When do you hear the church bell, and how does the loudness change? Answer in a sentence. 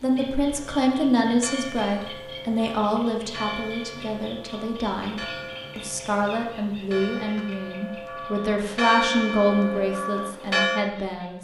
The church bell can be heard from 0.5 to 10.9 s, getting louder.